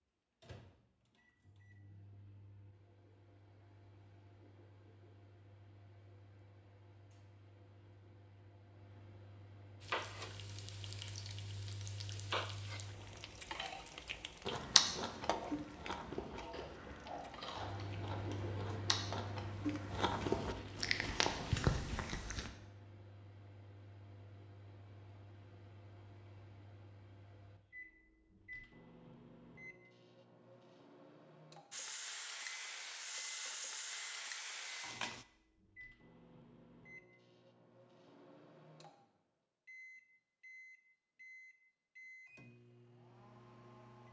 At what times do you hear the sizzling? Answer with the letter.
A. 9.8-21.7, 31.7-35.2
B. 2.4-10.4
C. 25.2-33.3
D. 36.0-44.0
A.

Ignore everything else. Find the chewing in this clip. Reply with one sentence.
The chewing can be heard from 14.4 to 22.5 s.